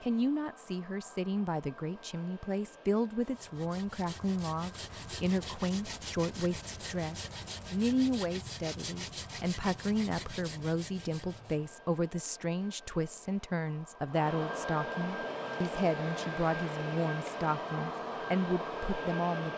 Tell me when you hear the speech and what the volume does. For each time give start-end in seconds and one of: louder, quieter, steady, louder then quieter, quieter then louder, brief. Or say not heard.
0.0-19.5 steady.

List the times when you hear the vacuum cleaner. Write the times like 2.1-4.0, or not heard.
0.0-19.5.